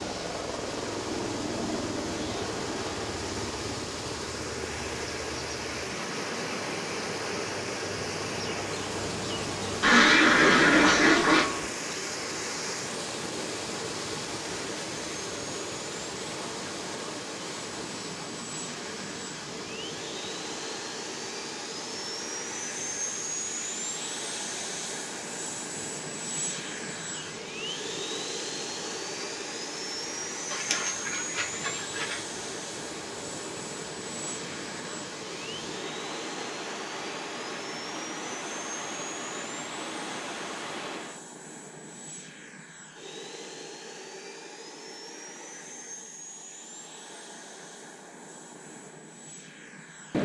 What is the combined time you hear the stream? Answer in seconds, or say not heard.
41 s.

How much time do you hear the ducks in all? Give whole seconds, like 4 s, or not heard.
3 s.